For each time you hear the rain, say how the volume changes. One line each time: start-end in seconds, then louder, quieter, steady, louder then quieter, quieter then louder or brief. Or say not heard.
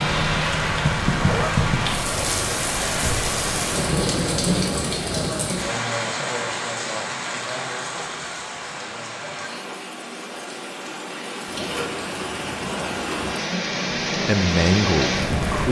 0.0-15.6 quieter then louder.